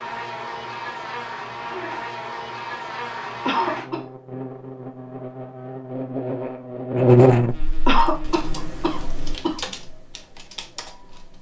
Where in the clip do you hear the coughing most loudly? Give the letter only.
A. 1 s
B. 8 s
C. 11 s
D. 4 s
B.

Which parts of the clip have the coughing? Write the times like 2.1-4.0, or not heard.
3.5-4.0, 7.8-9.6.